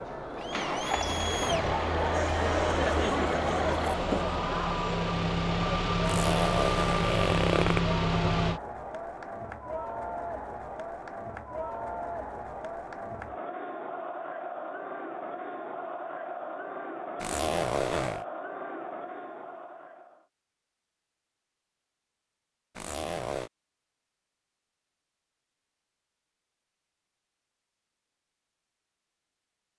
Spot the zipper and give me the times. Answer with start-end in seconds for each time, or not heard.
6.0-7.8, 17.2-18.2, 22.8-23.5.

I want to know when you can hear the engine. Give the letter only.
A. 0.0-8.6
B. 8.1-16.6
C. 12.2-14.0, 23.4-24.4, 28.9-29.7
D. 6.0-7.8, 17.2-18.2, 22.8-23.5
A.